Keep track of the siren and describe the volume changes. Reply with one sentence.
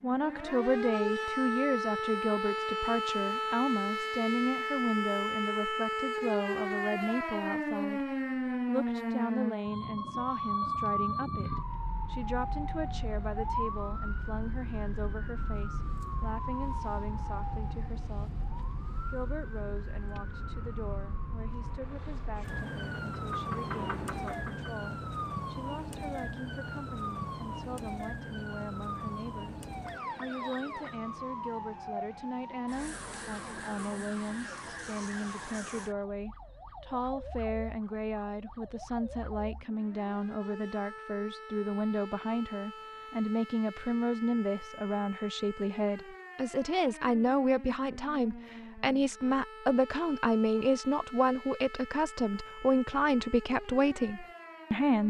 The loudness of the siren goes down.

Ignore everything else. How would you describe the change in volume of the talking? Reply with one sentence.
The volume of the talking goes down, then up.